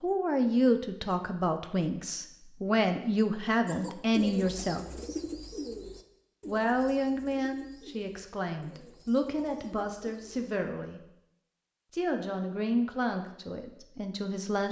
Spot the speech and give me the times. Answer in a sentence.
The speech can be heard from 0.0 to 4.8 s, from 6.5 to 11.0 s and from 11.9 to 14.6 s.